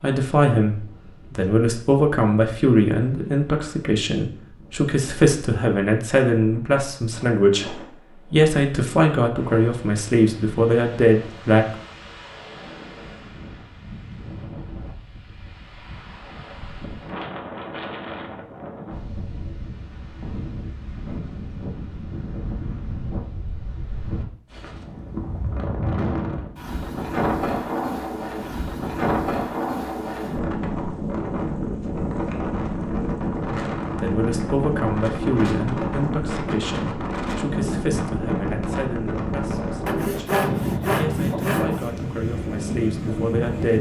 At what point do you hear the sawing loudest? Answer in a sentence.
The volume of the sawing peaks at 40 seconds.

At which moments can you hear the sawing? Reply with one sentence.
You can hear the sawing from 39.9 to 41.9 s.